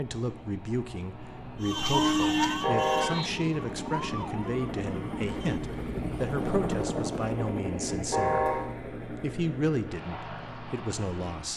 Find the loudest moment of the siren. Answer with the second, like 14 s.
2 s.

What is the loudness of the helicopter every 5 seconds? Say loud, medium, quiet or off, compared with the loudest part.
medium, loud, medium.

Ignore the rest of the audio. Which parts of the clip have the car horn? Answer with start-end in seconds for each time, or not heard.
2.6-3.2, 8.1-8.7.